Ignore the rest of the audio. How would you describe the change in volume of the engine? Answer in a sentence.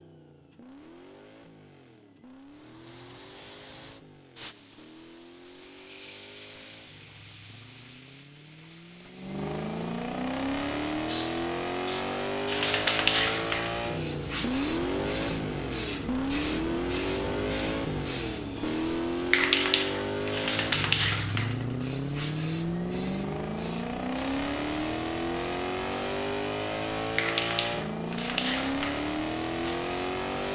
The volume of the engine goes up.